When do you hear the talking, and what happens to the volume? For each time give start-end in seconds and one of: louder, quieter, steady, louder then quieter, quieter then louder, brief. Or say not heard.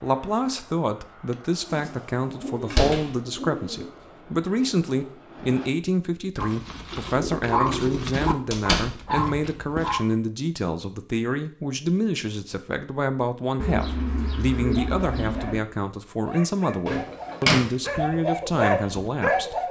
0.0-19.6 steady.